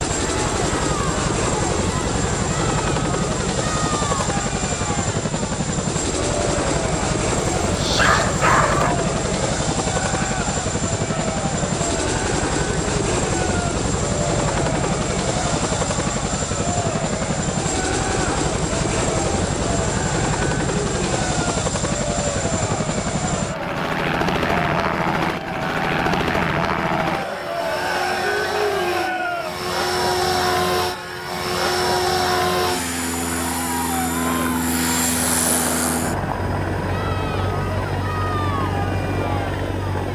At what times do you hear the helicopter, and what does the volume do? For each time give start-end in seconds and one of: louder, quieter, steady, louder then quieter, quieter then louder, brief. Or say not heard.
0.0-40.0 steady.